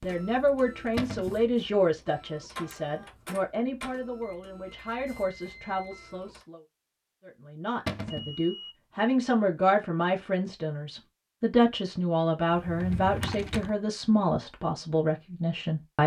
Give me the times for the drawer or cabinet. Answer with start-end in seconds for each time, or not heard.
0.9-1.4, 7.8-8.3, 12.5-13.8.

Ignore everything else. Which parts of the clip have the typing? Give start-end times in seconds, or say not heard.
not heard.